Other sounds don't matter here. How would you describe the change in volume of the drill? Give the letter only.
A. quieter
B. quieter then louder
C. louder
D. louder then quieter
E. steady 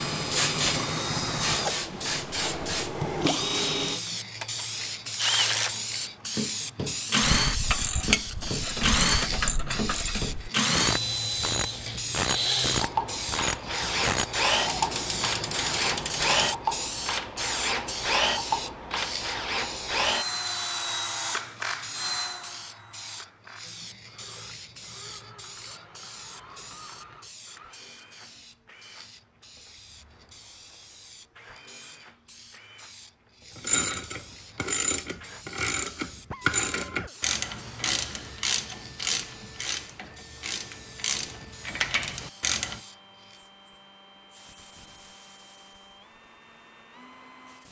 A.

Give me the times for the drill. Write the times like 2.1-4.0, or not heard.
0.0-47.6.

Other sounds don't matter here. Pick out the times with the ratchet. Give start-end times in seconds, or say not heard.
7.2-16.6, 33.5-42.8.